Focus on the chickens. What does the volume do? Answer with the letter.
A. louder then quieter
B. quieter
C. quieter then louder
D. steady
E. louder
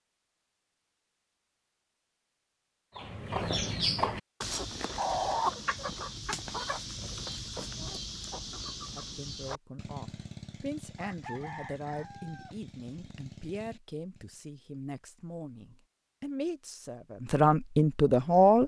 B.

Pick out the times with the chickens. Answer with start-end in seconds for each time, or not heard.
3.0-14.3.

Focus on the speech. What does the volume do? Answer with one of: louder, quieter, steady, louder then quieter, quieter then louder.
louder.